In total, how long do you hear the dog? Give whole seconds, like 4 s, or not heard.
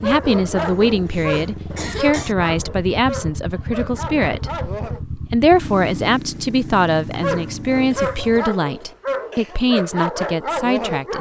9 s.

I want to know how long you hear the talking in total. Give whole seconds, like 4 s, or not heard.
11 s.